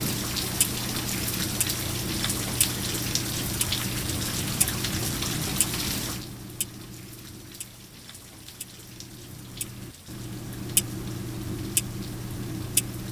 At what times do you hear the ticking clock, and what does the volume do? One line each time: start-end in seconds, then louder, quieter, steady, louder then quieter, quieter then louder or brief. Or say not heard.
0.0-13.0 quieter then louder.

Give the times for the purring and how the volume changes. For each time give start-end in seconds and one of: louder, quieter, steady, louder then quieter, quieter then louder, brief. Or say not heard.
not heard.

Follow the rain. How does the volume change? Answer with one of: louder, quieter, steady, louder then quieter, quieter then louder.
quieter.